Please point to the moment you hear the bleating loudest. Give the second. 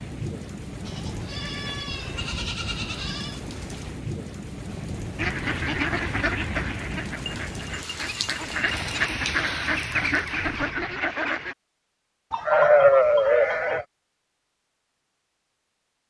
13 s.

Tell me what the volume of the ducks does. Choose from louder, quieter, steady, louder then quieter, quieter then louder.
quieter then louder.